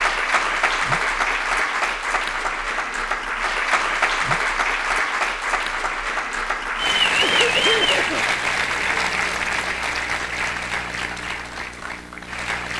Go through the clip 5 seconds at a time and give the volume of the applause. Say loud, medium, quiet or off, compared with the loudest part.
loud, loud, medium.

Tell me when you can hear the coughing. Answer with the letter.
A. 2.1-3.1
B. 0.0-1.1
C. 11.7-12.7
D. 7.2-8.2
D.